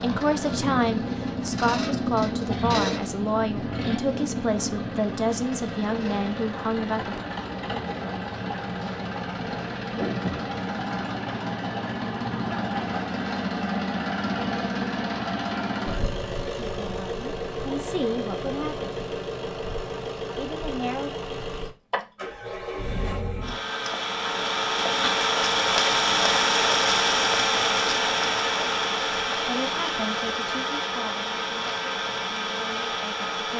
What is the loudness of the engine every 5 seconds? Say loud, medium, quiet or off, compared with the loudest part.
medium, medium, medium, medium, medium, loud, medium.